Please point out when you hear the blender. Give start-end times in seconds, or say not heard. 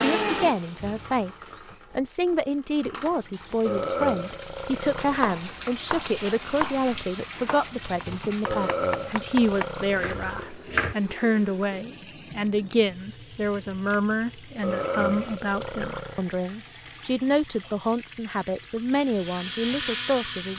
0.0-1.9, 18.9-20.5.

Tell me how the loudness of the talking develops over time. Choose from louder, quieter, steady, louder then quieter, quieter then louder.
steady.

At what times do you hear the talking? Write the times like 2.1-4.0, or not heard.
0.0-20.5.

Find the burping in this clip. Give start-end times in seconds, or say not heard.
3.6-5.3, 8.4-10.5, 14.6-16.2.